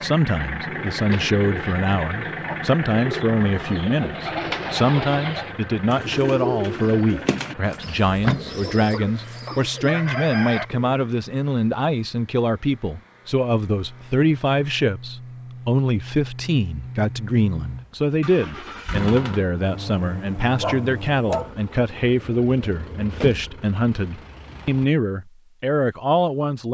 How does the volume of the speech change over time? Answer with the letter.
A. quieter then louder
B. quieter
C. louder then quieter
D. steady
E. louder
D.